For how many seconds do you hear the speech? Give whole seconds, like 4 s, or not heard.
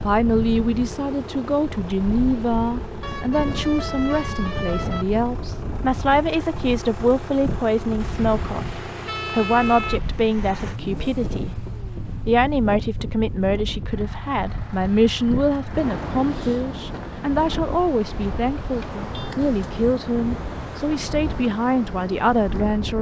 22 s.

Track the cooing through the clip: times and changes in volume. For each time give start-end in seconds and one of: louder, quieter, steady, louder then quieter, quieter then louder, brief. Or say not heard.
not heard.